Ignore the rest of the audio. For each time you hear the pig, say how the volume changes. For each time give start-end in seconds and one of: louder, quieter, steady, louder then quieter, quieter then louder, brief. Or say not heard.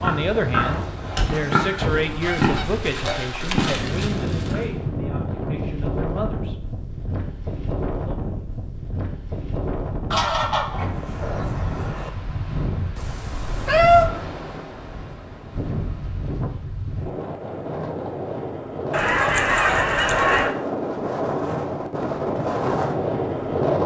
0.0-4.7 quieter then louder.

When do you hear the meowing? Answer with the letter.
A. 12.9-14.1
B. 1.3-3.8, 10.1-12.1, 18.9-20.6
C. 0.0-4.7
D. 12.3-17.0
A.